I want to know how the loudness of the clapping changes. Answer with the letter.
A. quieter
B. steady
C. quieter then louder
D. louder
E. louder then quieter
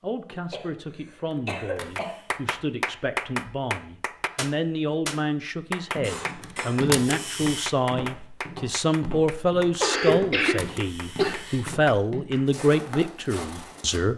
A.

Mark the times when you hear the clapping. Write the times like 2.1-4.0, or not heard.
1.9-12.6.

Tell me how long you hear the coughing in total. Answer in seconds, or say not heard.
5 s.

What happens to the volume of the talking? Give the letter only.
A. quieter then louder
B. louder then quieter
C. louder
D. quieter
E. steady
C.